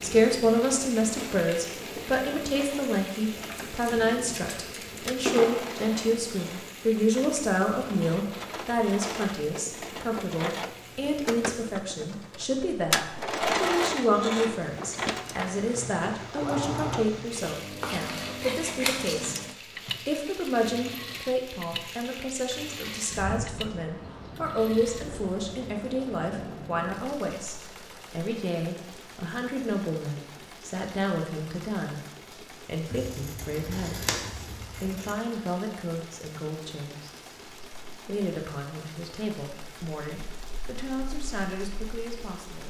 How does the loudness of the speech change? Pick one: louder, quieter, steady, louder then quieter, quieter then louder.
quieter.